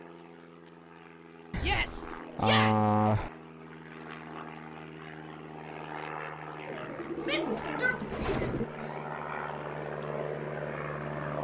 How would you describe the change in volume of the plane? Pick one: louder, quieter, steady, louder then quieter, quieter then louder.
louder.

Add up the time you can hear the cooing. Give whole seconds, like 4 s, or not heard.
4 s.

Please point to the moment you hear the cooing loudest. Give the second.
3 s.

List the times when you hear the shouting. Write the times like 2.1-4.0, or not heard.
1.6-2.8, 7.2-8.9.